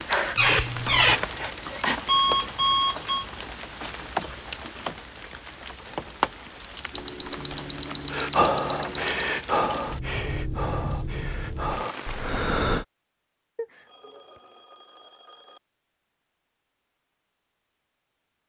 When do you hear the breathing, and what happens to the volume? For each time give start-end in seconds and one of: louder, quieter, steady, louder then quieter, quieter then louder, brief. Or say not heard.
0.0-2.0 brief
8.1-12.8 quieter then louder.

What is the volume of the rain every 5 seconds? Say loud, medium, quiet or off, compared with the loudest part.
loud, loud, loud, off.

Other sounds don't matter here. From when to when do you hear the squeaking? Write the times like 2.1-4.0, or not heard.
0.3-1.2.